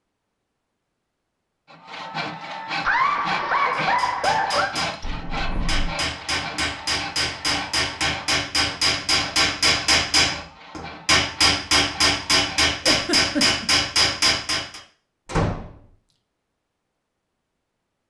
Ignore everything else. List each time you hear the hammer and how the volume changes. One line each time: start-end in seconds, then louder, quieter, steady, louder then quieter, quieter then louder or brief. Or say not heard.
3.8-14.8 louder.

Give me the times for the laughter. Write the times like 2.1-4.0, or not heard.
2.8-4.8, 12.8-13.7.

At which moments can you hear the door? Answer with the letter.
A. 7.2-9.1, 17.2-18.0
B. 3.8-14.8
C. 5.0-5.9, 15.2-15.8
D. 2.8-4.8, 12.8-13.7
C.